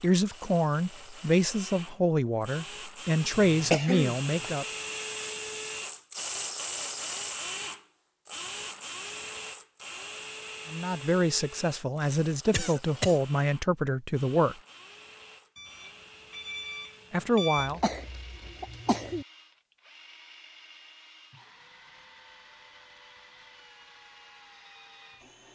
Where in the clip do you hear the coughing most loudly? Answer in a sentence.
The volume of the coughing peaks at 4 seconds.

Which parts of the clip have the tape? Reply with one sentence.
You can't hear the tape here.